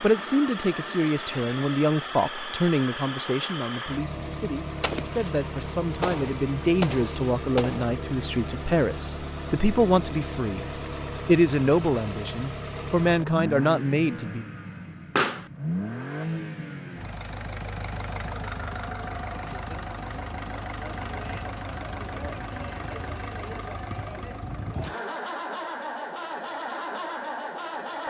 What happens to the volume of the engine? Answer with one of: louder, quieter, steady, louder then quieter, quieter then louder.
steady.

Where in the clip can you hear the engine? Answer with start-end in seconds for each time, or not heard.
0.0-28.0.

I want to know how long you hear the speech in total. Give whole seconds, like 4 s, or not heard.
14 s.